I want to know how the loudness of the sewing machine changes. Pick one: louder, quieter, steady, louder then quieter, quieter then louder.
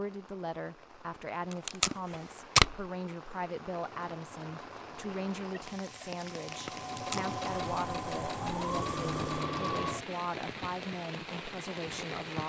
louder.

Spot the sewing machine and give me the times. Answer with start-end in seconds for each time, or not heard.
4.0-10.1.